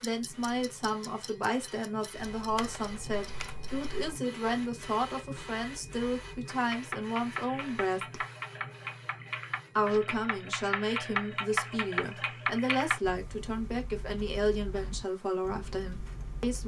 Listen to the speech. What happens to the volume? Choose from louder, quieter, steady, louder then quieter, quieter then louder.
steady.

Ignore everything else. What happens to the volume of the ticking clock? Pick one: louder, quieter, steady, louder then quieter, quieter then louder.
louder then quieter.